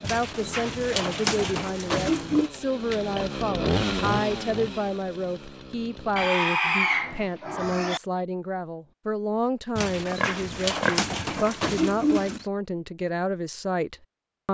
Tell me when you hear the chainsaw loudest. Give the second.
4 s.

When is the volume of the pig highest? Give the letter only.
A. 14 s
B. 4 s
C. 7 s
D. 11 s
C.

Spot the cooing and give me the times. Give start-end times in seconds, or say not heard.
0.0-2.5, 9.8-12.4.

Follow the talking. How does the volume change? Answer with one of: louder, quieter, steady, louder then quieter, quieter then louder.
steady.